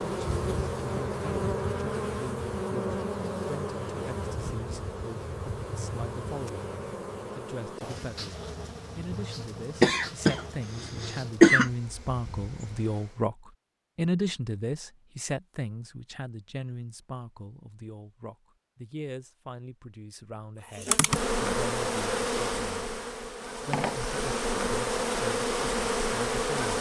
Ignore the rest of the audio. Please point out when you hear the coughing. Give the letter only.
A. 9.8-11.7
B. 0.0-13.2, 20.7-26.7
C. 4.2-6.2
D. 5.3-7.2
A.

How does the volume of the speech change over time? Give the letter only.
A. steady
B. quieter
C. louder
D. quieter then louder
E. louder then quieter
E.